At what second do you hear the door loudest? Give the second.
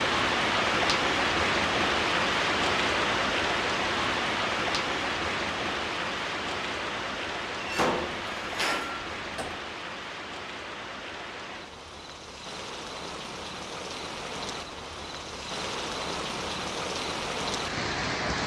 8 s.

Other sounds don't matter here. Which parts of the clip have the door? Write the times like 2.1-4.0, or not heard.
7.6-9.6.